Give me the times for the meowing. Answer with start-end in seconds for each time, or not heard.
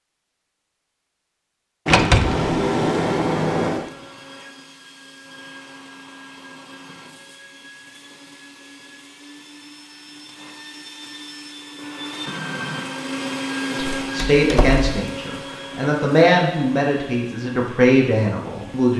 not heard.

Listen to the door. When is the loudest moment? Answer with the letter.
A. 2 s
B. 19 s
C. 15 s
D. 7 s
A.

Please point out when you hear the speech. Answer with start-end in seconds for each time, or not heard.
14.1-18.9.